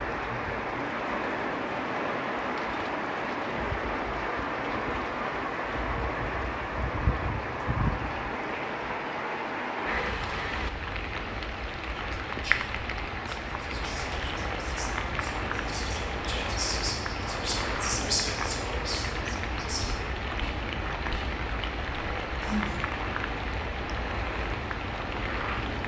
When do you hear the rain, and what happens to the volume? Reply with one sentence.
You can hear the rain from 0.0 to 25.8 s, at a steady volume.